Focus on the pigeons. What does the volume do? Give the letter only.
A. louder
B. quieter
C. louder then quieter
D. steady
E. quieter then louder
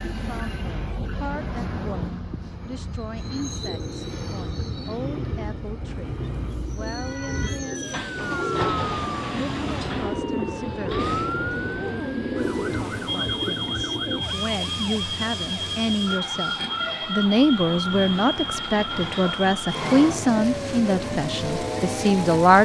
A.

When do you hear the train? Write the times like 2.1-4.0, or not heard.
0.0-22.5.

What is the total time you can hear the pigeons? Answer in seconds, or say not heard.
11 s.